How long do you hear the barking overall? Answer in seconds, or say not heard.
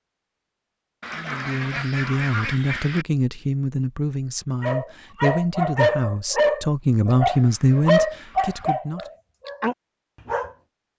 6 s.